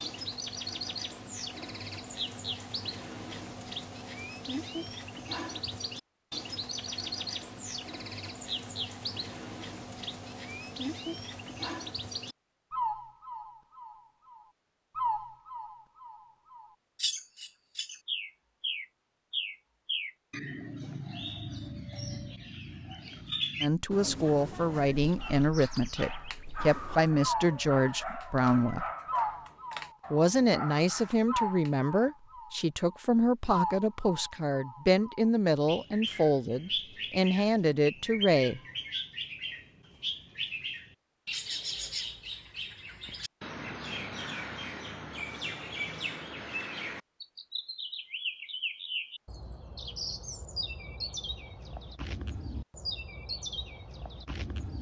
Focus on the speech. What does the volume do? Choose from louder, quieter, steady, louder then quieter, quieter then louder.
steady.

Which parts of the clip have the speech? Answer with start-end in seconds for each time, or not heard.
23.6-28.9, 30.1-38.6.